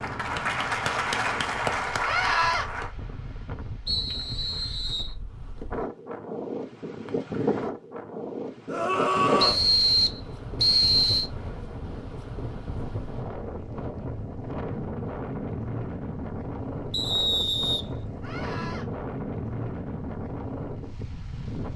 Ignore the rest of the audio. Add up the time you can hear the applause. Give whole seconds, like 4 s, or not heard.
3 s.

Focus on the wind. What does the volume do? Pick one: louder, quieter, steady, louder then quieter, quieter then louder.
louder.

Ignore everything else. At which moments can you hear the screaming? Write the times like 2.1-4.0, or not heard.
2.0-2.6, 8.7-9.6, 18.2-18.9.